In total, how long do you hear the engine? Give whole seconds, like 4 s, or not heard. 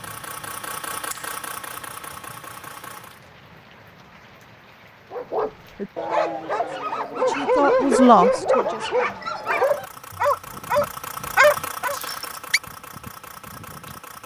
8 s.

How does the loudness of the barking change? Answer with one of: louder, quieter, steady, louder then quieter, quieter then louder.
louder.